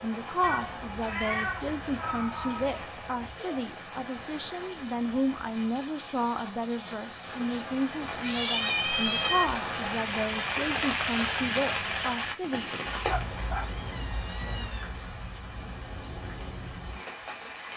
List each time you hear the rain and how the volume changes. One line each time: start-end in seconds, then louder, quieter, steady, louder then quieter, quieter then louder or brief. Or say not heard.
0.0-17.7 louder then quieter.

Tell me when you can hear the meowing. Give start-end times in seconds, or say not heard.
0.4-2.9, 7.5-9.4, 12.8-14.8.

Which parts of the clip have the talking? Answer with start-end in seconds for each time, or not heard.
0.0-12.7.